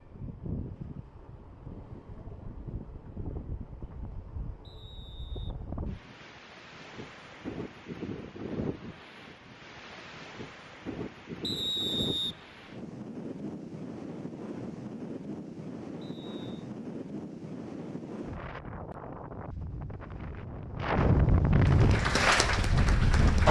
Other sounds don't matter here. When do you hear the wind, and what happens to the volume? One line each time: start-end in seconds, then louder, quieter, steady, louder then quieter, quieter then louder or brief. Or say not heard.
0.0-23.4 louder.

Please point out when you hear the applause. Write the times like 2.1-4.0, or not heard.
21.6-23.4.